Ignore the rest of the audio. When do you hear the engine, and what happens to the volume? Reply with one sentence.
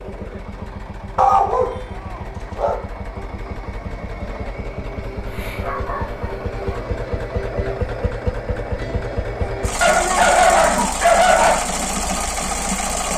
The engine can be heard from 0.0 to 13.1 s, getting louder.